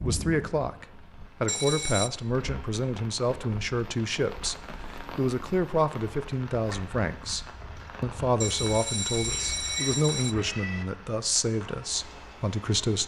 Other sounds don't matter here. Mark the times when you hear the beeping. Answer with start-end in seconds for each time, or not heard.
1.4-2.1, 8.4-10.3.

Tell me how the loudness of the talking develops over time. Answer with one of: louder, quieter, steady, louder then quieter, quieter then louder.
steady.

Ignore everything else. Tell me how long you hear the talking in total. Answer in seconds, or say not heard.
13 s.